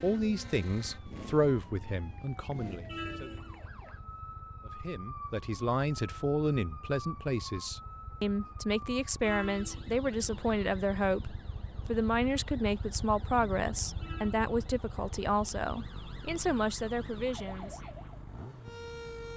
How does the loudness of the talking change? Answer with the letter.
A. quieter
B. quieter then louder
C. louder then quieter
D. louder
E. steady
E.